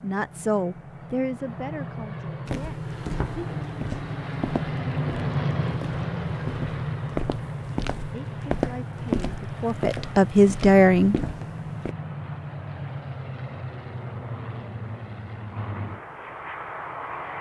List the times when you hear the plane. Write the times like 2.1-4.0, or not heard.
0.0-17.3.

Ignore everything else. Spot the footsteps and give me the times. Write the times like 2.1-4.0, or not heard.
2.5-11.9.